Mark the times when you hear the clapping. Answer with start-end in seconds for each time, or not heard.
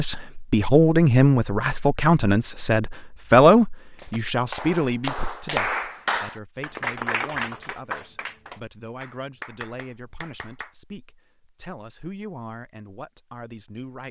4.0-10.8.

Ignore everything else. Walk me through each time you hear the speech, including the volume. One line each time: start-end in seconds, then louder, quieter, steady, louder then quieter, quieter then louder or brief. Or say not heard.
0.0-14.0 quieter.